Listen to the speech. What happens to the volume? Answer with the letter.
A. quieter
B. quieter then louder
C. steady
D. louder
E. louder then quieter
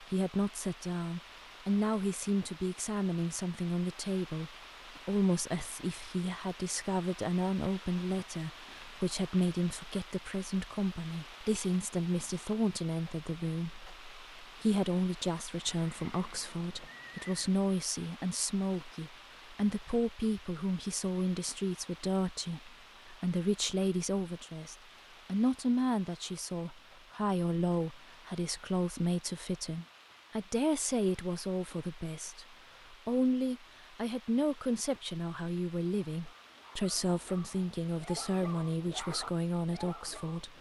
C.